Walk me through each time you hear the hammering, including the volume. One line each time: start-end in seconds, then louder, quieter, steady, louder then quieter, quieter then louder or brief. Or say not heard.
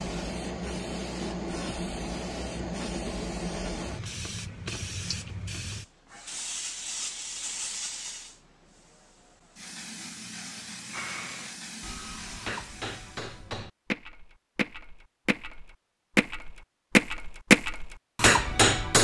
10.9-18.9 louder.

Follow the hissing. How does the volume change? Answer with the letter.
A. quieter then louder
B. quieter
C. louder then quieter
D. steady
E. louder
B.